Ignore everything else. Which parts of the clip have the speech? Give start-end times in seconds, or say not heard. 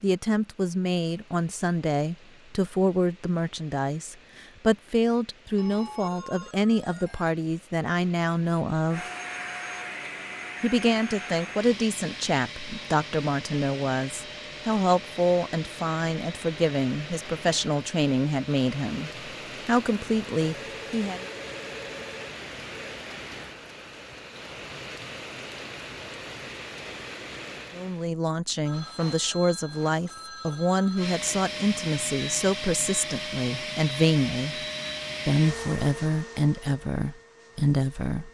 0.0-9.1, 10.6-21.2, 27.8-34.5, 35.2-38.3.